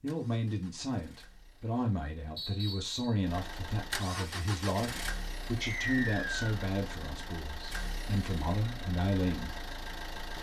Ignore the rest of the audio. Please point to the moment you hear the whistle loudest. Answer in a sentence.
The loudest moment of the whistle is at 6 seconds.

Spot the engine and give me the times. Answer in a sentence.
You can hear the engine from 0.0 to 10.3 s.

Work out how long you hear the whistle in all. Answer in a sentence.
You can hear the whistle for 2 seconds altogether.